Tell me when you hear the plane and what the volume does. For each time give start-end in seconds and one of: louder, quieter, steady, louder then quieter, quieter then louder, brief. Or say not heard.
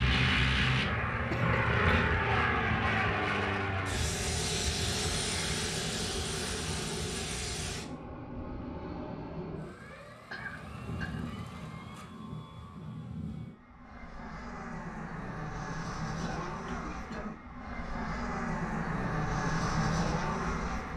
0.0-20.9 quieter then louder.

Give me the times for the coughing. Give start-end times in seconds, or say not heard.
1.3-2.0, 9.7-11.2, 16.1-17.4.